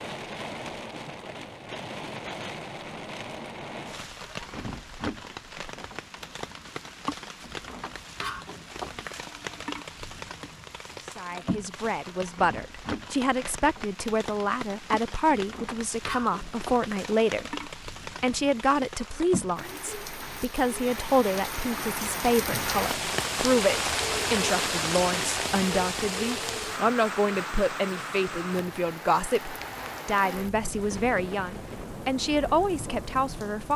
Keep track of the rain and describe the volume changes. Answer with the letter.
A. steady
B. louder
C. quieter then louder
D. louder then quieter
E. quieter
D.